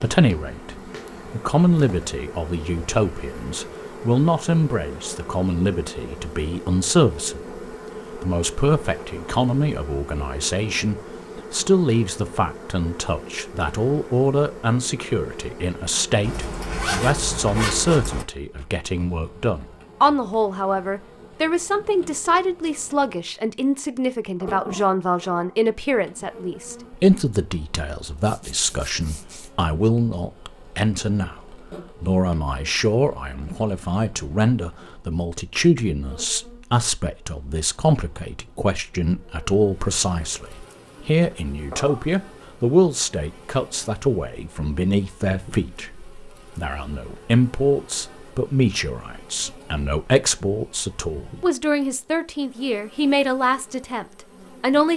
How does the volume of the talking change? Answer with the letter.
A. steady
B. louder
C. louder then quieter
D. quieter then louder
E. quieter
A.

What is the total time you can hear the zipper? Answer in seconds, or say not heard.
3 s.